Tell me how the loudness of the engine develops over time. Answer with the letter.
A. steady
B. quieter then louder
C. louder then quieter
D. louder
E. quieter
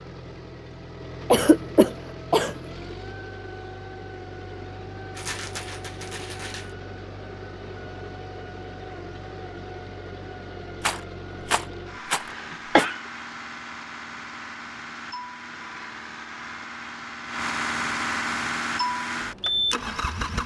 D.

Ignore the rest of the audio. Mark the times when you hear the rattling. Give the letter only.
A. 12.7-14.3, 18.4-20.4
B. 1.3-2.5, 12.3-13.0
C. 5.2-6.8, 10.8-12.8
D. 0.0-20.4
C.